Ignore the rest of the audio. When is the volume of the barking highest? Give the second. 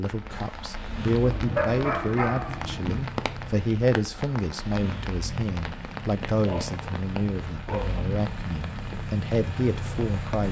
2 s.